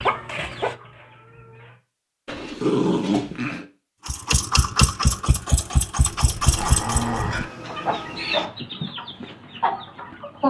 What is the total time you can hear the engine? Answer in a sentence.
You can hear the engine for 3 seconds altogether.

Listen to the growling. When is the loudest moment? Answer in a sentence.
The loudest moment of the growling is at 3 seconds.